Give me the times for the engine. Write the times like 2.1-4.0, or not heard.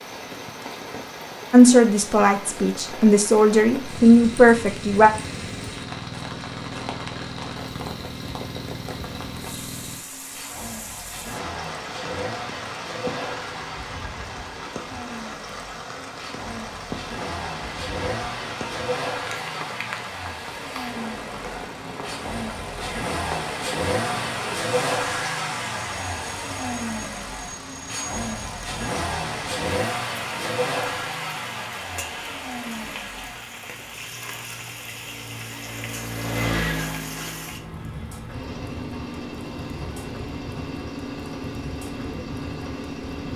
3.8-43.3.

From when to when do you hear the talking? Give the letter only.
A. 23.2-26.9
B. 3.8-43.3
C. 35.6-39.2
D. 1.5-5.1
D.